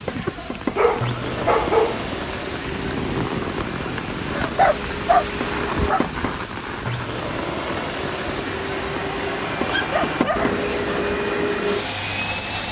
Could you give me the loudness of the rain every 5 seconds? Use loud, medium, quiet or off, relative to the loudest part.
loud, loud, medium.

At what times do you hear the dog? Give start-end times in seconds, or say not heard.
0.1-2.0, 4.3-6.0, 9.7-11.1.